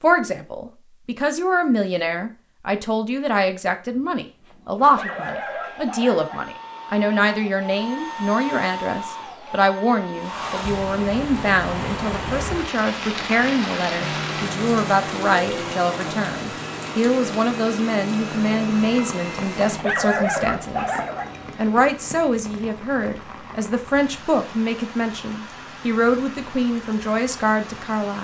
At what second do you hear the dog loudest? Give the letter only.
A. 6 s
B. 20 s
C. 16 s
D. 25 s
B.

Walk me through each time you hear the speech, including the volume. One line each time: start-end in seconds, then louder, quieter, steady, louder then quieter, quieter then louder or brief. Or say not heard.
0.0-20.9 steady
21.6-28.1 steady.